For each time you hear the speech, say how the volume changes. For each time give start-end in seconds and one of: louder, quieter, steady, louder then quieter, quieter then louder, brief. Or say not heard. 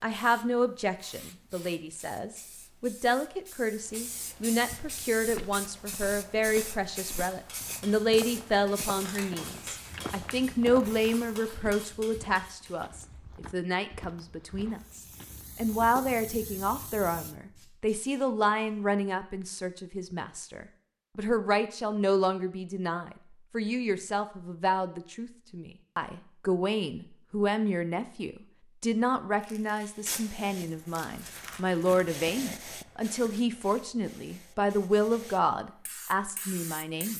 0.0-37.1 steady.